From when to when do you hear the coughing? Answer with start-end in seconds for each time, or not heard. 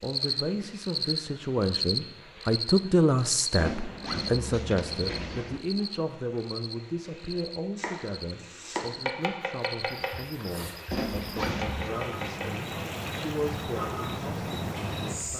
not heard.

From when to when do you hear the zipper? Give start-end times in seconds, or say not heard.
3.5-5.6, 10.9-11.9.